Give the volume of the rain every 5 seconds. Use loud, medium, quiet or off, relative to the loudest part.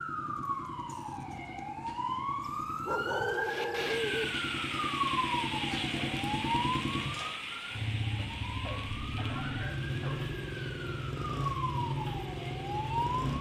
loud, loud, quiet.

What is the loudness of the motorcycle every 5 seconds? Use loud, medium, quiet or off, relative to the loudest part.
medium, loud, loud.